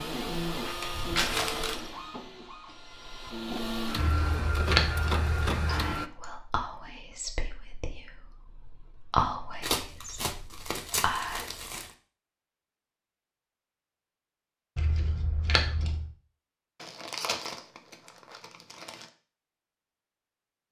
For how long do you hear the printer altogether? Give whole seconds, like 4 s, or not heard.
6 s.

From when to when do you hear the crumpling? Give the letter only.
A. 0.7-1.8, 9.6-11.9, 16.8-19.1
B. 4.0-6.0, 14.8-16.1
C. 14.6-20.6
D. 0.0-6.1
A.